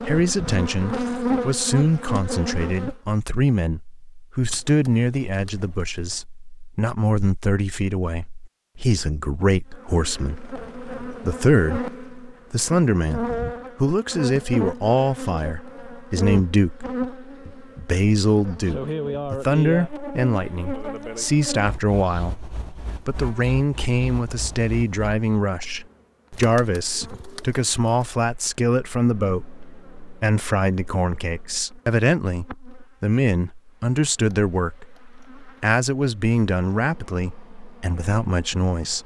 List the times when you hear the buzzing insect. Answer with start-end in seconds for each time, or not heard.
0.0-3.0, 9.7-39.0.